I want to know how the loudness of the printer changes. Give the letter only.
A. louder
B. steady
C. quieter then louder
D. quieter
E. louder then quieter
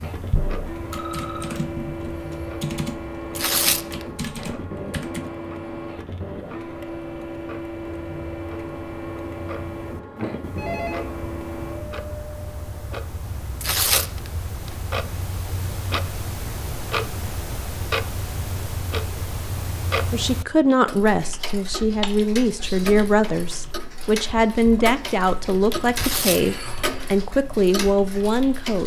B.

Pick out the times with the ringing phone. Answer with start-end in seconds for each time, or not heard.
0.9-1.6, 10.2-11.1, 26.2-27.1.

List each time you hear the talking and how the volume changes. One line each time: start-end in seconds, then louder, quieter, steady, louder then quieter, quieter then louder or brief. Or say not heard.
20.1-28.8 steady.